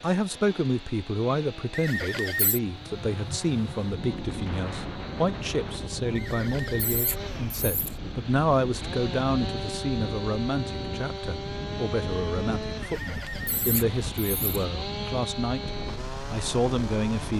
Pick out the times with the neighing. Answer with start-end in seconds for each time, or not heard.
1.7-2.6, 6.2-8.0, 12.8-14.6.